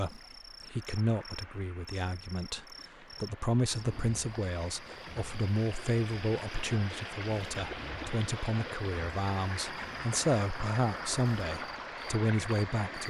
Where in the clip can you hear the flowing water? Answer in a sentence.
The flowing water can be heard from 0.0 to 13.0 s.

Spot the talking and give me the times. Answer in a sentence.
The talking can be heard from 0.0 to 13.0 s.